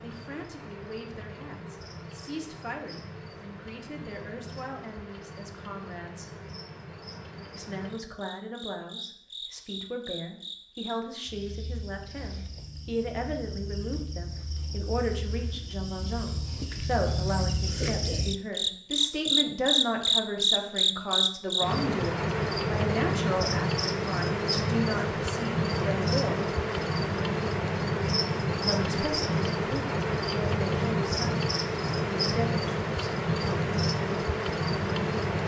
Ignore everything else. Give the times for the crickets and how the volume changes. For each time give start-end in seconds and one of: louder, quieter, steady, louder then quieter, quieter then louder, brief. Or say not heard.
0.0-35.4 louder.